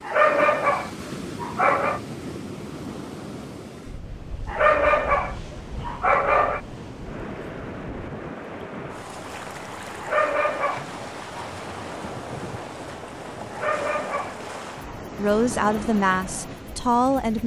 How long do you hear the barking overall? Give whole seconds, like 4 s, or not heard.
7 s.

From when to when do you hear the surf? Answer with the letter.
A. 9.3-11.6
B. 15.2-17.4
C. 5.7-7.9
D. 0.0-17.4
D.